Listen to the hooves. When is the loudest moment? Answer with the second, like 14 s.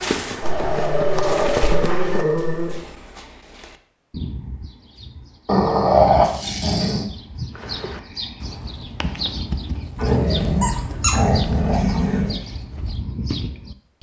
2 s.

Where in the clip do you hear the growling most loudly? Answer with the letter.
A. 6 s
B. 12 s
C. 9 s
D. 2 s
A.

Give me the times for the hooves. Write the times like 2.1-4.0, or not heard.
0.0-2.2, 7.5-13.0.